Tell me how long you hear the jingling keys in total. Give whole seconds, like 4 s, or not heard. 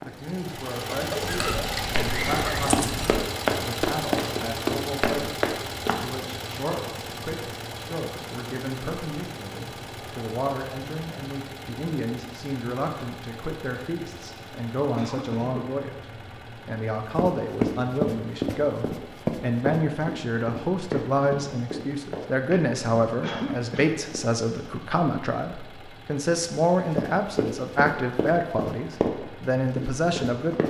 2 s.